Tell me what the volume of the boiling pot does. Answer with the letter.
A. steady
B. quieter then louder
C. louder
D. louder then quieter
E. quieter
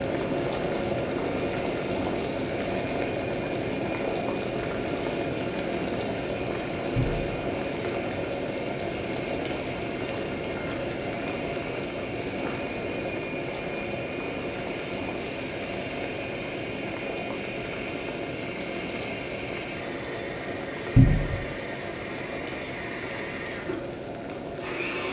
E.